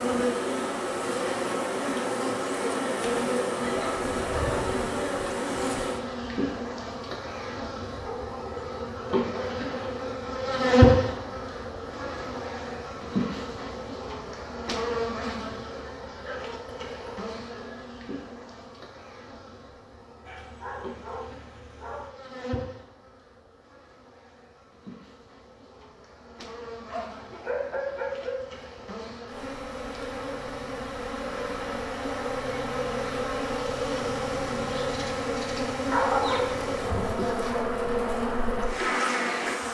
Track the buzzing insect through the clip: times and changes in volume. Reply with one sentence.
You can hear the buzzing insect from 0.0 to 39.6 s, getting quieter then louder.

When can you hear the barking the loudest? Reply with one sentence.
The loudest moment of the barking is at 36 seconds.